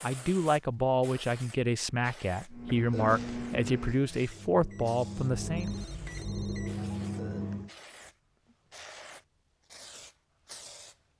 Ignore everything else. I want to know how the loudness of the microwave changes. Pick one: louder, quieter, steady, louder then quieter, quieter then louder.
quieter then louder.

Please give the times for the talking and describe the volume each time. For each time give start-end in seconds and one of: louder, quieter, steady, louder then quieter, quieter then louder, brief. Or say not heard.
0.0-5.7 steady.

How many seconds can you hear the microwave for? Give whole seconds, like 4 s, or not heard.
5 s.